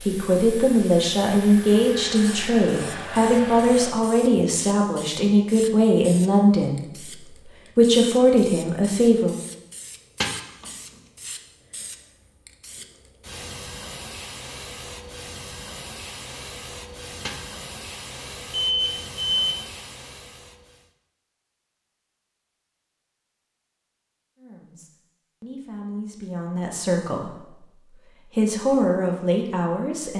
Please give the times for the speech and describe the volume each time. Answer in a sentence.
You can hear the speech from 0.0 to 9.3 s, at a steady volume; and from 24.4 to 30.1 s, getting louder.